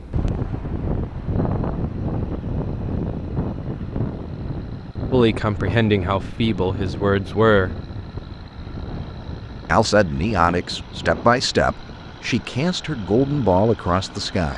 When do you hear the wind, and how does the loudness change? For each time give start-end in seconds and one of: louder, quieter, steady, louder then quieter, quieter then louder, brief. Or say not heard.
0.0-14.3 quieter.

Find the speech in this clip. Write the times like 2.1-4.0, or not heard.
5.1-7.8, 9.7-14.5.